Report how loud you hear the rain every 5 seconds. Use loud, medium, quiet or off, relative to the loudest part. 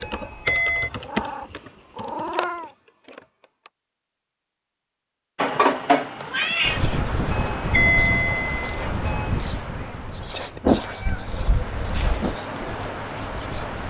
off, loud, medium.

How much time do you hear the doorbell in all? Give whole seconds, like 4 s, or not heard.
3 s.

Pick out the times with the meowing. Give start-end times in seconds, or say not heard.
0.9-2.8, 5.3-6.8, 10.6-12.3.